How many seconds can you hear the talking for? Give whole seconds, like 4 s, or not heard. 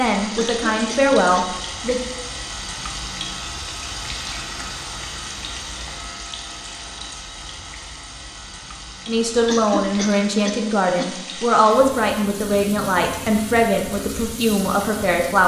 8 s.